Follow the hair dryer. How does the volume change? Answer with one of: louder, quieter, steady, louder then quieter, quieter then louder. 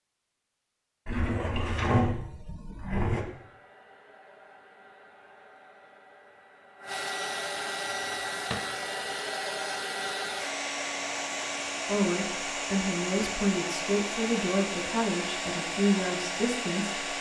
louder.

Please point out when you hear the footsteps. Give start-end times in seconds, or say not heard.
not heard.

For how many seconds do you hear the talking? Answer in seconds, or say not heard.
5 s.